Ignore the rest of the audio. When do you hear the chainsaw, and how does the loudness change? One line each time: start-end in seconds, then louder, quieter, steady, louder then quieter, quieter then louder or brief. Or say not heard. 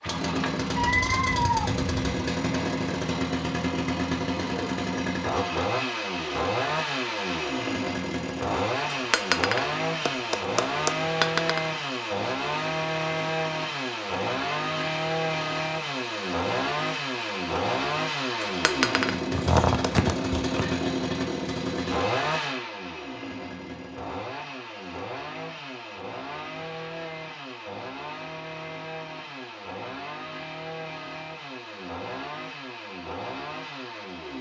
0.0-34.3 quieter.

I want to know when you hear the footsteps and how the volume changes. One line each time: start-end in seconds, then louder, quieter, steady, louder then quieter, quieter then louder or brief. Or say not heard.
not heard.